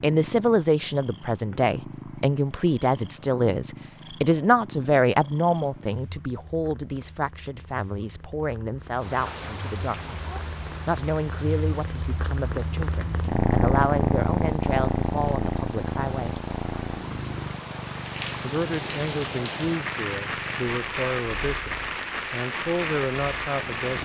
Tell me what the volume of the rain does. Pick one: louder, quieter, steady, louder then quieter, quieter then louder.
quieter then louder.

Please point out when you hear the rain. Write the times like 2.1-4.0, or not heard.
8.9-23.9.